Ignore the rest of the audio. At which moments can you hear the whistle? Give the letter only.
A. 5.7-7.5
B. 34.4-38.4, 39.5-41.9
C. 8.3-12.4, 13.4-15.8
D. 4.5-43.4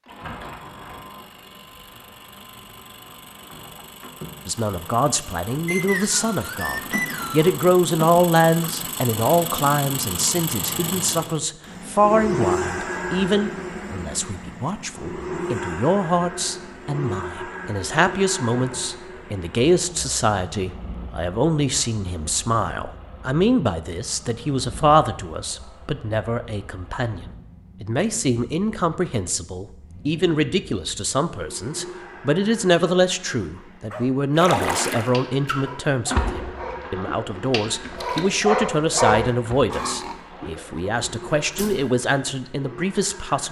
A.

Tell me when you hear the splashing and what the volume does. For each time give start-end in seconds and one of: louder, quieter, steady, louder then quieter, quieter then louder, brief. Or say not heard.
34.4-38.4 quieter
39.5-41.9 brief.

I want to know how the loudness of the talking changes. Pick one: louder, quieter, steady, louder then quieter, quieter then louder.
steady.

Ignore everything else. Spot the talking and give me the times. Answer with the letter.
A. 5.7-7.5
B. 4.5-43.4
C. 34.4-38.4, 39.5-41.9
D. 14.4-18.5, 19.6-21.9
B.